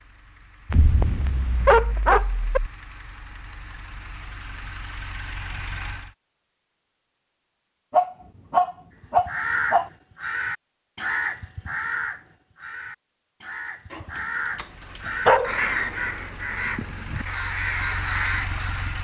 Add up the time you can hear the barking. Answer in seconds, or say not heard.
6 s.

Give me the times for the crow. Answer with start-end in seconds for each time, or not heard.
9.0-18.9.